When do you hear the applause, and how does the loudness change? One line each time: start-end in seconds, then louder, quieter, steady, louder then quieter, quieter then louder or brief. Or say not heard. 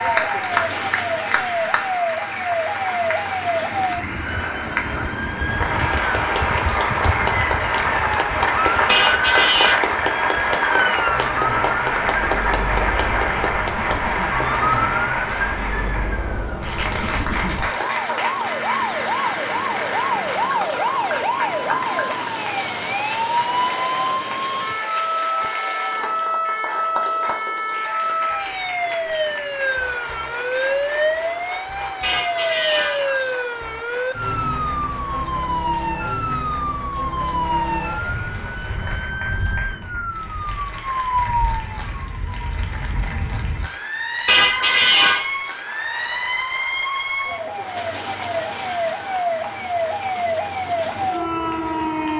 0.0-52.1 quieter.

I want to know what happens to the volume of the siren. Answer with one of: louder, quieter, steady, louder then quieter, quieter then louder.
steady.